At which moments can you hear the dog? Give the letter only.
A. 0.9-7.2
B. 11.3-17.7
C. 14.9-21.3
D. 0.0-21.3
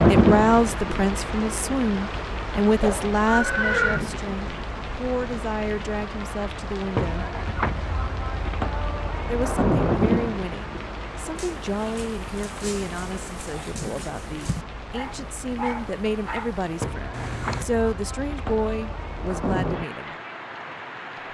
B.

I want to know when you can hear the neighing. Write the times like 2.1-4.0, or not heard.
2.8-4.0.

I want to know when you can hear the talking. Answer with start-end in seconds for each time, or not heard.
0.0-7.3, 9.2-20.1.